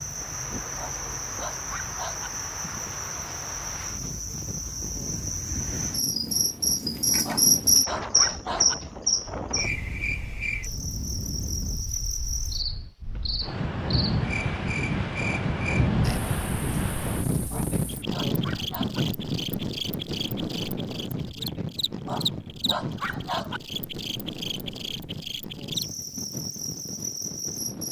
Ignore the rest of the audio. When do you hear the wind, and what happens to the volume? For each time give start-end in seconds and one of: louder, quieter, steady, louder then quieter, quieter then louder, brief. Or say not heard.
0.0-27.8 louder then quieter.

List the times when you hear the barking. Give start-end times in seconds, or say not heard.
0.8-2.3, 7.2-8.8, 17.5-19.0, 22.1-23.6.